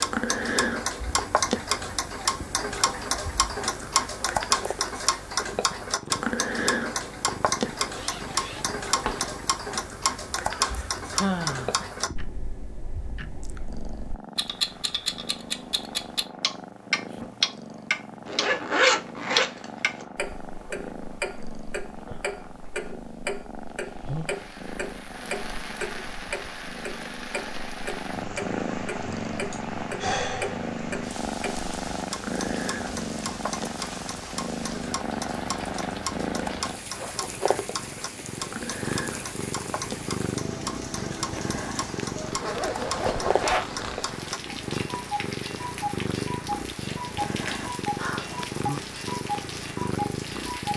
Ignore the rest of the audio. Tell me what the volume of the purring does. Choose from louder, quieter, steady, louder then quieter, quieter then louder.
louder.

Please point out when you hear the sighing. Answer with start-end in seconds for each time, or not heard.
10.6-11.8, 29.5-30.6, 48.0-48.8.